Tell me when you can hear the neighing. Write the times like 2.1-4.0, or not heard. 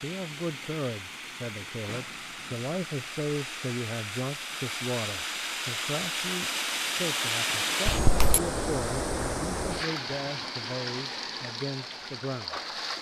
7.8-8.4.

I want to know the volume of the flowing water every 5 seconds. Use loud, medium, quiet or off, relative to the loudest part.
medium, loud, medium.